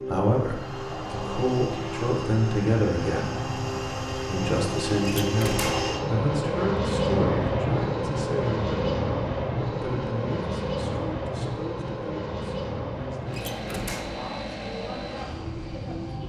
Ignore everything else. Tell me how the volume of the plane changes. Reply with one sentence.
The loudness of the plane goes up, then down.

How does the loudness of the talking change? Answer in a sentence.
The loudness of the talking goes down.